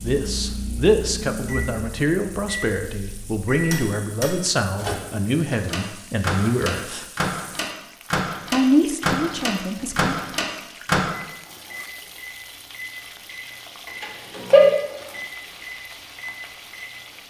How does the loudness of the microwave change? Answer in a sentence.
The volume of the microwave goes up.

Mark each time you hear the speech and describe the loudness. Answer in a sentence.
The speech can be heard from 0.0 to 7.0 s, at a steady volume; and briefly from 8.5 to 10.2 s.